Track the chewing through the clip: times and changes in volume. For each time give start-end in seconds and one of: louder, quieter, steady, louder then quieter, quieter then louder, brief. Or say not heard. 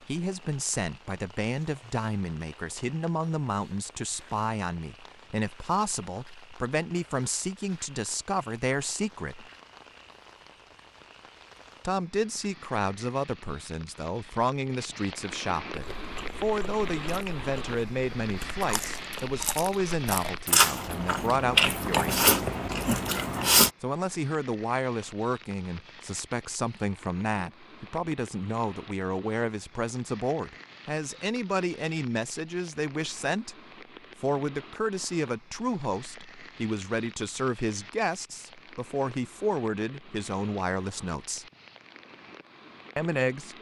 15.7-23.7 louder.